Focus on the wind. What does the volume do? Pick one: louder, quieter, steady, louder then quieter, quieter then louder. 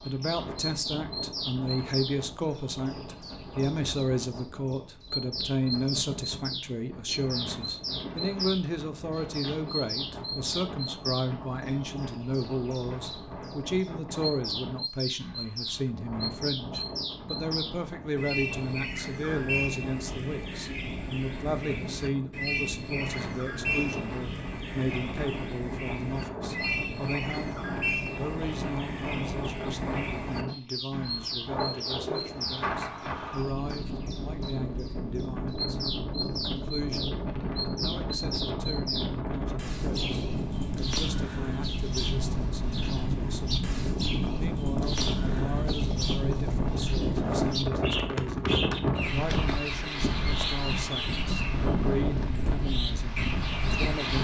louder.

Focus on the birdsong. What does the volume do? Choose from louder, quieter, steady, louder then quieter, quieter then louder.
steady.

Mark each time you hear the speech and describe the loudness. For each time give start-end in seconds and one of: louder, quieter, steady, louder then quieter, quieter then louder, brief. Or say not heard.
0.1-43.6 quieter
44.4-54.2 steady.